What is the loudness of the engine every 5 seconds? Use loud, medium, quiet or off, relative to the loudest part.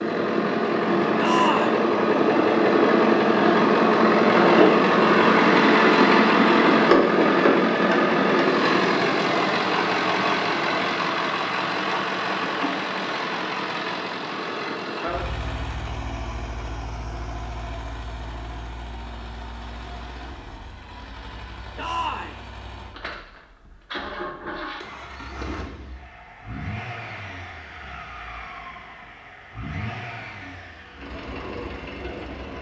loud, loud, medium, quiet, quiet, quiet, quiet.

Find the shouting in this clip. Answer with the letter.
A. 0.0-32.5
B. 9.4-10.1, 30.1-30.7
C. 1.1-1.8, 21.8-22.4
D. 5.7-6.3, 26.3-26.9
C.